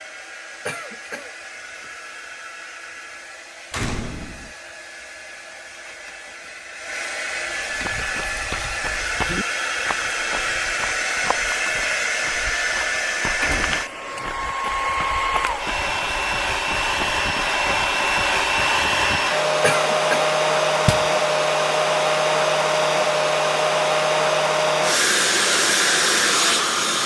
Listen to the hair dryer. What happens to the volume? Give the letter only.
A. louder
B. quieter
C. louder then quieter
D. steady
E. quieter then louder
A.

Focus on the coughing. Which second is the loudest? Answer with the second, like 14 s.
20 s.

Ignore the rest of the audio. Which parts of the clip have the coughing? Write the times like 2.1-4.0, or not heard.
0.7-1.3, 19.6-20.3.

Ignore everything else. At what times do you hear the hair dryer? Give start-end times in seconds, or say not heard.
0.0-27.0.